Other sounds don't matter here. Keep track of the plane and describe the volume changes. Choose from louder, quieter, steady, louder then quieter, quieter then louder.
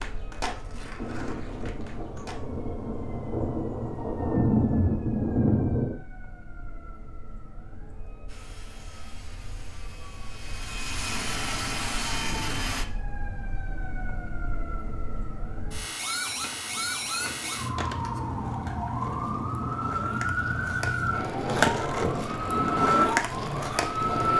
louder.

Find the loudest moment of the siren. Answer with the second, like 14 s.
23 s.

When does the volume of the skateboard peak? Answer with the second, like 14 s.
22 s.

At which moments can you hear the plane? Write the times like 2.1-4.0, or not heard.
8.2-12.8.